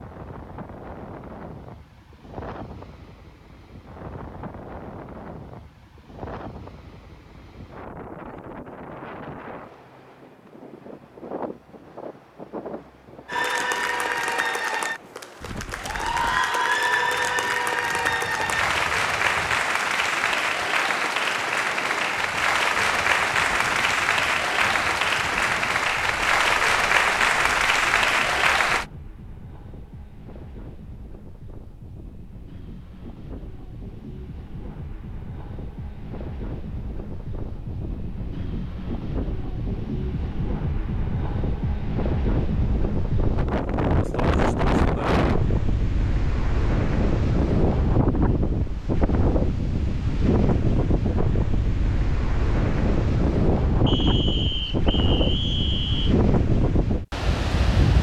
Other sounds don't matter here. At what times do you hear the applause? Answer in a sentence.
You can hear the applause from 13.2 to 28.9 s.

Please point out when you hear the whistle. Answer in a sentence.
You can hear the whistle from 53.9 to 56.1 s.